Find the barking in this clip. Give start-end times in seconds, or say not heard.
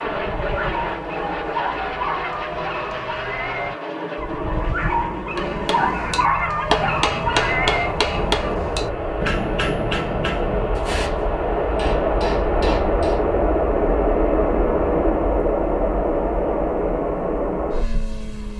0.1-8.0.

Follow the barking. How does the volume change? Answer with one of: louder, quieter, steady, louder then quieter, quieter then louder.
louder.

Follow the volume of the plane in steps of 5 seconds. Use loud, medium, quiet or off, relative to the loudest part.
medium, medium, loud, loud.